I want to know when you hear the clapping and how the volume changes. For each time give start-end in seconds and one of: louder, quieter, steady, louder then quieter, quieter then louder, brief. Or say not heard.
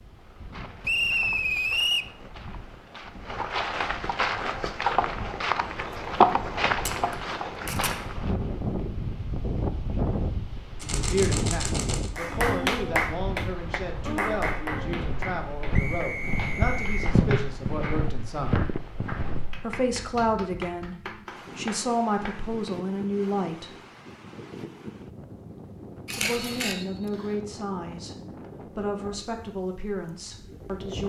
12.2-22.8 quieter.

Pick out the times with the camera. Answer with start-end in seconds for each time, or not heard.
6.8-8.0, 10.8-12.1, 26.1-26.8.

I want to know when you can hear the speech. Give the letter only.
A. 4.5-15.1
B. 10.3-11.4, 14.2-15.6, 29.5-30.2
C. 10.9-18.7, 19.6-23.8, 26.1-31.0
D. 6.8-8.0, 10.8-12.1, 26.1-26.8
C.